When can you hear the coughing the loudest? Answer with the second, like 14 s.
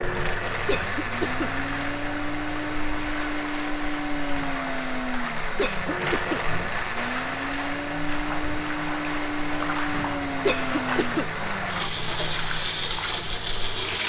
11 s.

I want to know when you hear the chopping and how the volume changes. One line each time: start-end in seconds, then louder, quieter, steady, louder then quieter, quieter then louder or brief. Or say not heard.
not heard.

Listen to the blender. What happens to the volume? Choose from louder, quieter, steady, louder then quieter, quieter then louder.
steady.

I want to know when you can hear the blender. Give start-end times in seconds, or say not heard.
0.0-14.0.